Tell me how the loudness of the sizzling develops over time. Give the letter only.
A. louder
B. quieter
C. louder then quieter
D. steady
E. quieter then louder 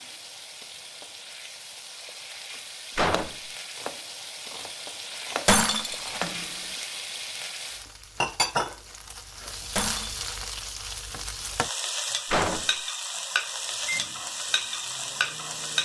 A.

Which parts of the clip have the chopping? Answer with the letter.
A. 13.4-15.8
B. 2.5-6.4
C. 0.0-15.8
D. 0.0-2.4
B.